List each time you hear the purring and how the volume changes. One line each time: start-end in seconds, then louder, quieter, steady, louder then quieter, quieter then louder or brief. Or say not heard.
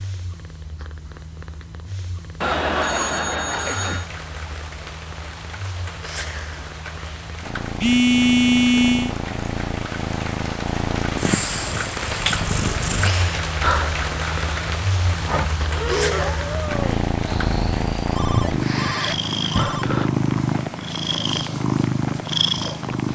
0.0-23.1 louder.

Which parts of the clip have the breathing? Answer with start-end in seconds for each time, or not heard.
13.6-20.1.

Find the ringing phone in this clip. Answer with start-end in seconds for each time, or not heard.
2.4-4.0, 7.8-9.2, 18.1-19.9.